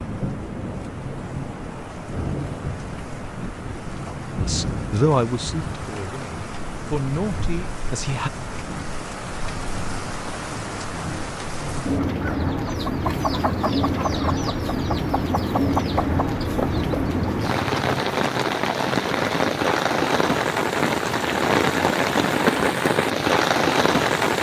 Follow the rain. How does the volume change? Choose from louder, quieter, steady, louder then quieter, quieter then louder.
louder.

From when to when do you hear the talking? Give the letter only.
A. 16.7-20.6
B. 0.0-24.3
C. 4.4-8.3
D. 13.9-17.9
C.